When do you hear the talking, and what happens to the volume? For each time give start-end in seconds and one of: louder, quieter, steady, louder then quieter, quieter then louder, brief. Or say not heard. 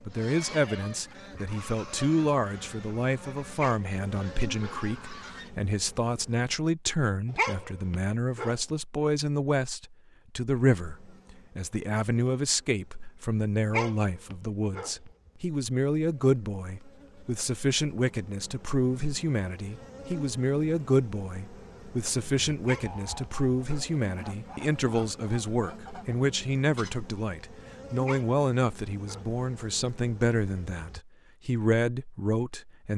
0.0-32.9 steady.